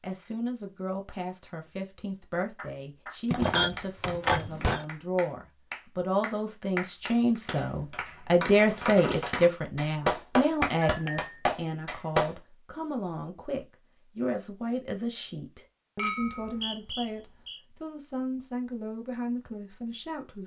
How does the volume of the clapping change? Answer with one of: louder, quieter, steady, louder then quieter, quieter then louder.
louder.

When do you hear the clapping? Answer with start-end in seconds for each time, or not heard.
2.5-12.3.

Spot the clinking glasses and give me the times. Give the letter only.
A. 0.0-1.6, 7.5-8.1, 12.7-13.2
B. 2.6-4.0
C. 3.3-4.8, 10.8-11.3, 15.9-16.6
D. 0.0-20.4
C.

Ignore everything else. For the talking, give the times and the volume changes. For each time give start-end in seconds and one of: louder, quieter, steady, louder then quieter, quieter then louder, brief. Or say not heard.
0.0-20.4 louder then quieter.